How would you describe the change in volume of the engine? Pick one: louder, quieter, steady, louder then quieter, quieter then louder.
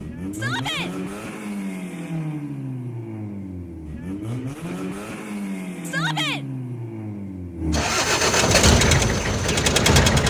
louder.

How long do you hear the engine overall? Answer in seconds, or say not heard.
10 s.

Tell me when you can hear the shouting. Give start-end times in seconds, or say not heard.
0.3-0.9, 5.8-6.5.